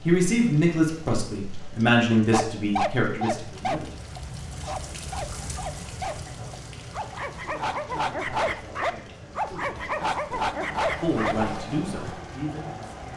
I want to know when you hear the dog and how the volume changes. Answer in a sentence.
You can hear the dog from 2.3 to 11.6 s, getting quieter then louder.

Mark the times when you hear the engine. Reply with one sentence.
The engine can be heard from 10.6 to 13.1 s.